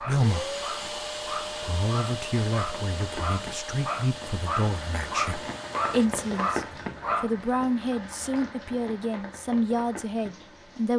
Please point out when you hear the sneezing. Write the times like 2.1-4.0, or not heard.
not heard.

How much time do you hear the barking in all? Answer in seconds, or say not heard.
7 s.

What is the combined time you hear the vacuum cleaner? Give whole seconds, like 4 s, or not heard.
6 s.